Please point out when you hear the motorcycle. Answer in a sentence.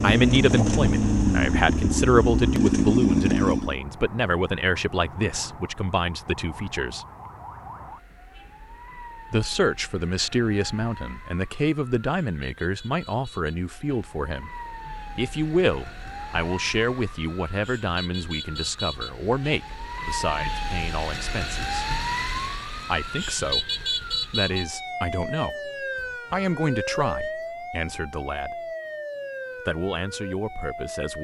You can hear the motorcycle from 0.0 to 3.8 s.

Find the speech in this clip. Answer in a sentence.
The speech can be heard from 0.0 to 7.0 s, from 9.3 to 14.5 s, from 15.2 to 21.9 s, from 22.9 to 28.6 s and from 29.6 to 31.1 s.